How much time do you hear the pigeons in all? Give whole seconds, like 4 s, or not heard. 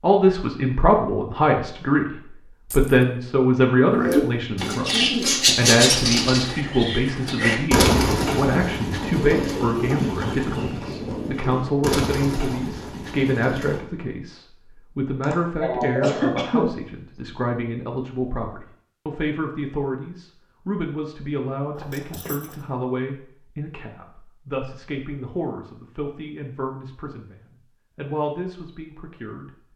10 s.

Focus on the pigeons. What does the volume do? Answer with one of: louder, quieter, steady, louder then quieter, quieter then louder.
quieter.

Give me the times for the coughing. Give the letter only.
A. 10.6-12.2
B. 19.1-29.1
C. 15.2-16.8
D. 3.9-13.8
C.